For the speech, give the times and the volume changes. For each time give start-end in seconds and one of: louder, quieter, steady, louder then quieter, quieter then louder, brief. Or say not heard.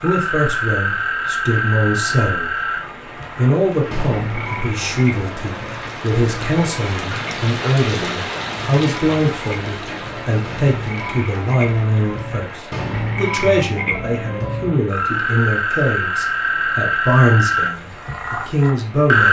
0.0-2.5 brief
3.4-19.2 steady.